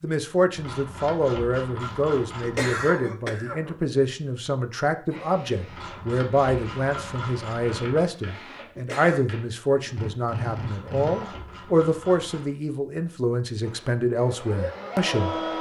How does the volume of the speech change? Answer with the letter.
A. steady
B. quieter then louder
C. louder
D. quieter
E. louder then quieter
A.